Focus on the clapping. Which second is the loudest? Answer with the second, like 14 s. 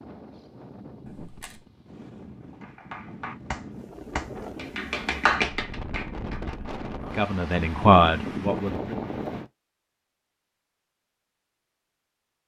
5 s.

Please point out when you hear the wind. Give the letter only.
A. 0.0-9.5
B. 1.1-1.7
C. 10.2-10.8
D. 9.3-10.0
A.